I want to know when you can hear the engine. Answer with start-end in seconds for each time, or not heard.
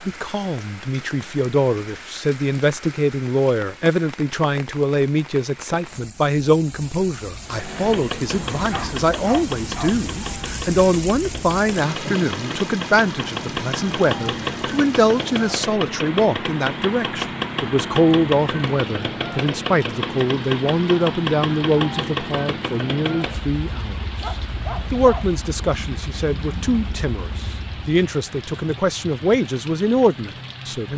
7.4-27.9.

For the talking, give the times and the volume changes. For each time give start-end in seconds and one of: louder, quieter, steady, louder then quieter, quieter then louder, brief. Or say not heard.
0.1-30.9 steady.